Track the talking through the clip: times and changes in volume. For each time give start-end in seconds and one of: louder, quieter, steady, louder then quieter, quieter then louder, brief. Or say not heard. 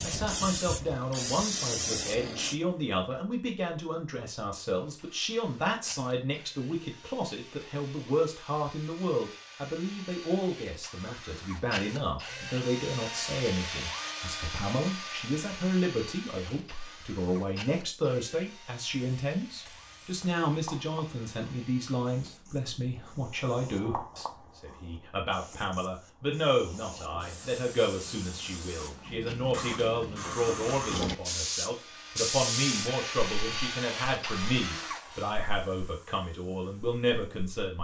0.0-37.8 steady.